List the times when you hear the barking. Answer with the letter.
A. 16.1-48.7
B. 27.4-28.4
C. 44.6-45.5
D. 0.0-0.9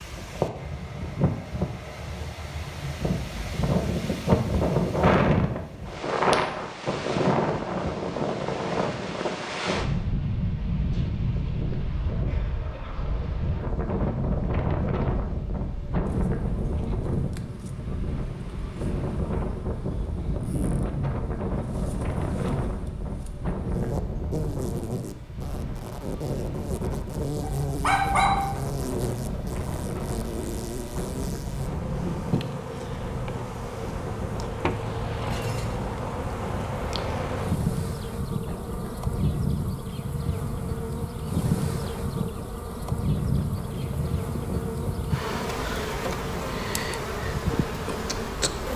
B.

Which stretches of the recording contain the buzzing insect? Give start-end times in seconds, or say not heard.
16.1-48.7.